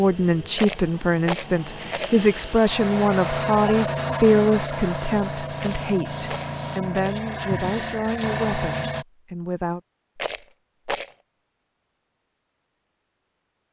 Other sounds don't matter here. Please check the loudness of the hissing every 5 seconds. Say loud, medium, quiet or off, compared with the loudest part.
loud, loud, off.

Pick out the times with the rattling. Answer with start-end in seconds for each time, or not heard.
0.6-2.1, 5.5-7.2, 10.2-11.2.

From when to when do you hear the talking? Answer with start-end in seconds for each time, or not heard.
0.0-9.8.